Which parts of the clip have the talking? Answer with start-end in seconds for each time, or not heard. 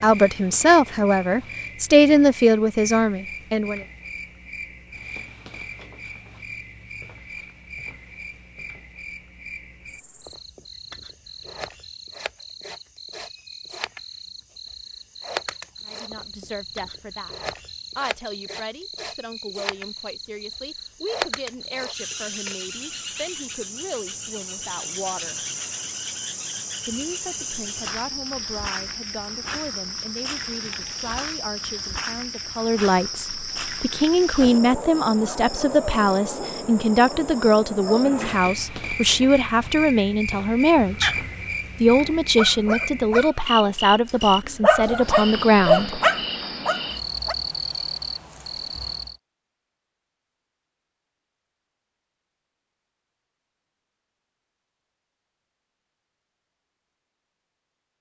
0.0-3.8, 15.8-17.4, 17.9-25.4, 26.9-41.2, 41.8-46.0.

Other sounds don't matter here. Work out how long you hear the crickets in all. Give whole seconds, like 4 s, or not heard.
49 s.